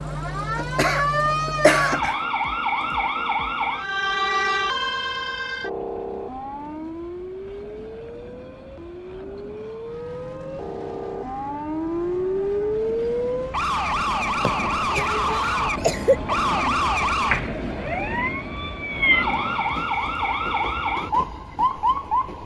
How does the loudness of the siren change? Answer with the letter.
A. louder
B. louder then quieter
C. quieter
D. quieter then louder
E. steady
D.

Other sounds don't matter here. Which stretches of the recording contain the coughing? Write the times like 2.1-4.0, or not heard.
0.6-2.1, 14.4-16.4.